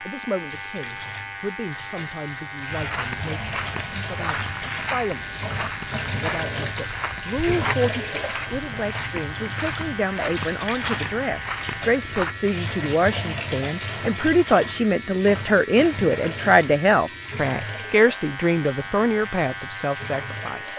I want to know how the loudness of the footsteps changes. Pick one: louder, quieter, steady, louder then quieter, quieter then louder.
steady.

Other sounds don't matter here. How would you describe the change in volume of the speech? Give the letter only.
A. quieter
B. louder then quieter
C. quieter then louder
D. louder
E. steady
D.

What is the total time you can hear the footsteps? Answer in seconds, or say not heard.
10 s.